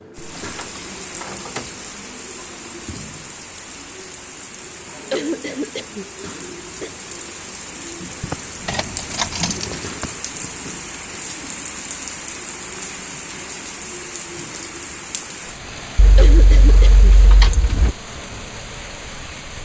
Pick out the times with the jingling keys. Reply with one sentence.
You can hear the jingling keys from 0.3 to 1.8 s, from 8.2 to 10.1 s and from 15.9 to 17.9 s.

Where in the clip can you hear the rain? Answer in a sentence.
The rain can be heard from 0.0 to 19.5 s.